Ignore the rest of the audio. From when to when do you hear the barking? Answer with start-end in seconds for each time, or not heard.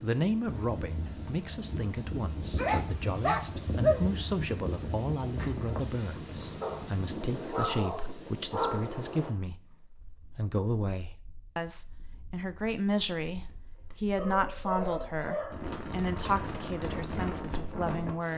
2.5-4.1, 6.6-8.9, 14.2-15.7.